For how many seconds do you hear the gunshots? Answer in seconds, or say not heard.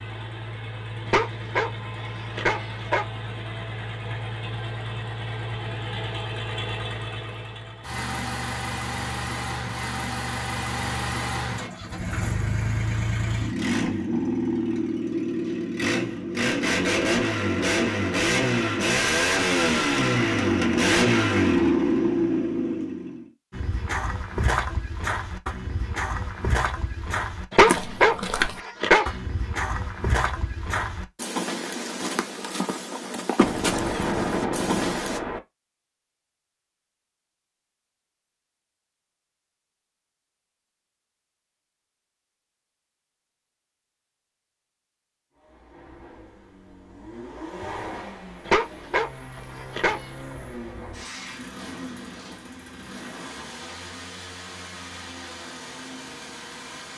2 s.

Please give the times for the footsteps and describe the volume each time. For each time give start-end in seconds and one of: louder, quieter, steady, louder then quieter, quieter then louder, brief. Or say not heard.
23.5-35.2 steady.